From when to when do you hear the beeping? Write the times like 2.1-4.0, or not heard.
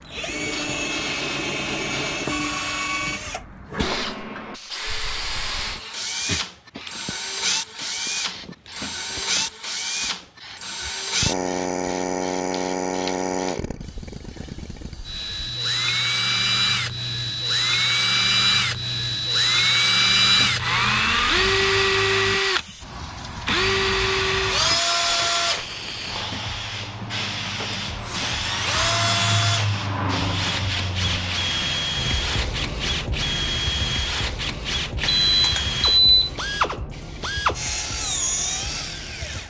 35.0-36.3.